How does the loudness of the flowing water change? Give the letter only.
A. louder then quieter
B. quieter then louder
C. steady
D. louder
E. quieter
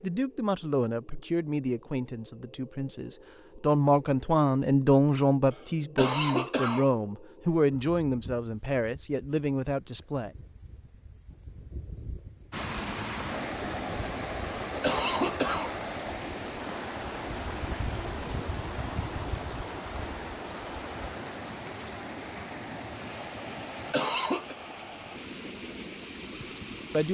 E.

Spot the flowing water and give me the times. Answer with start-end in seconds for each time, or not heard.
12.5-27.0.